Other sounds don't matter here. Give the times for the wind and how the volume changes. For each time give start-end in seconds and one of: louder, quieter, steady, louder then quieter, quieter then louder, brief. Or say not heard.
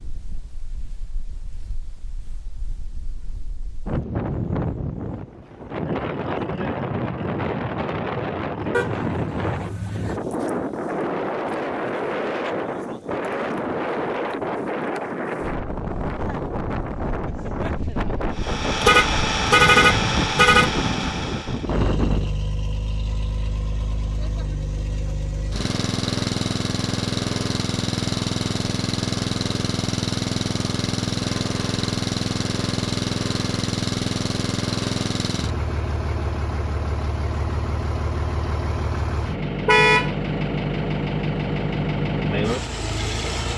0.0-22.3 louder.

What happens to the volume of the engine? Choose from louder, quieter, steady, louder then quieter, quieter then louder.
steady.